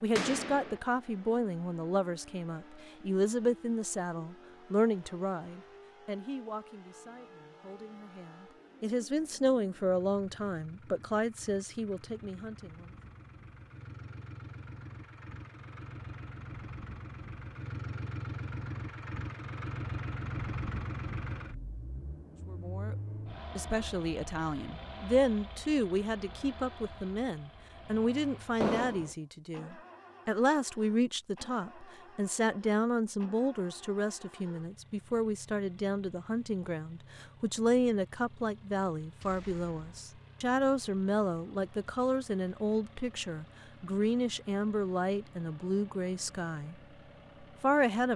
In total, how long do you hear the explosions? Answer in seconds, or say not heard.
2 s.